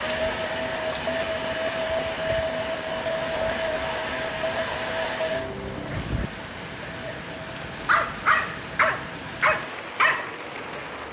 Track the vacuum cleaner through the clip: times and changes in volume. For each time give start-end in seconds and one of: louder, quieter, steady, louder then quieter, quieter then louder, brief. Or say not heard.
0.0-11.0 quieter.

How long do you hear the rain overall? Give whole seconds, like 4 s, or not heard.
11 s.